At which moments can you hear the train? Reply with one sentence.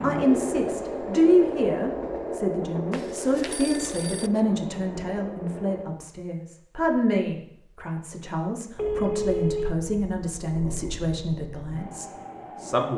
You can hear the train from 0.0 to 6.0 s and from 8.7 to 12.9 s.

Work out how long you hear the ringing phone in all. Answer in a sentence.
You can hear the ringing phone for 2 seconds altogether.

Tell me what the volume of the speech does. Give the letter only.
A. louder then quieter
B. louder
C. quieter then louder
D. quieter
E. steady
D.